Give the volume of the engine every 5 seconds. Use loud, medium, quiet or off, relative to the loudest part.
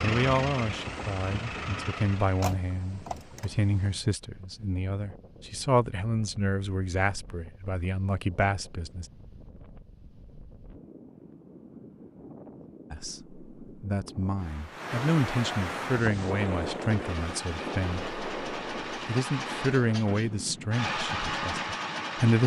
loud, off, off, medium, loud.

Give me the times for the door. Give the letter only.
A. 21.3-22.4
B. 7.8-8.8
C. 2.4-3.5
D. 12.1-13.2
C.